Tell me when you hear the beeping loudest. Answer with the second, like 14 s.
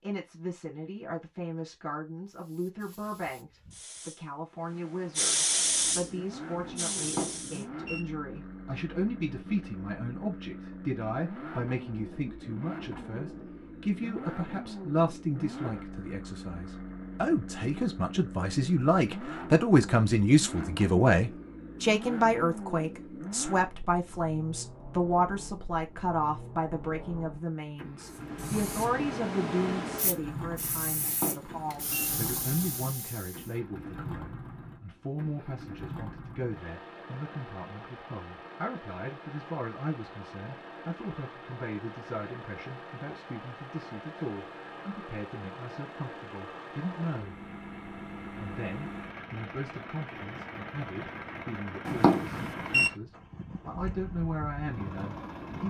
52 s.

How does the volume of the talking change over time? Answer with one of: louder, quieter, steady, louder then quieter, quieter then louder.
louder then quieter.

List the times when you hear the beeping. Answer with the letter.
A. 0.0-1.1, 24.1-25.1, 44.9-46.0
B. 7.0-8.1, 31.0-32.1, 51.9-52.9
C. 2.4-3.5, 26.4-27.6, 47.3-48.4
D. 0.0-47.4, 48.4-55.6
B.